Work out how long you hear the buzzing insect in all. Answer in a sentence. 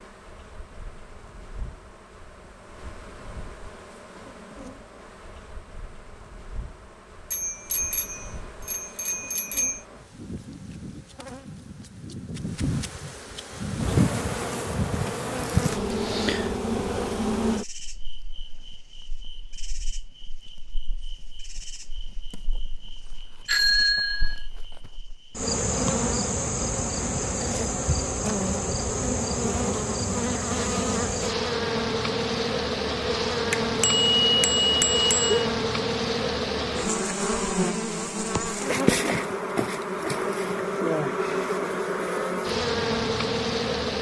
You can hear the buzzing insect for 44 seconds altogether.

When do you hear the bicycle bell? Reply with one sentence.
You can hear the bicycle bell from 7.3 to 9.8 s, from 23.4 to 24.4 s and from 33.5 to 35.5 s.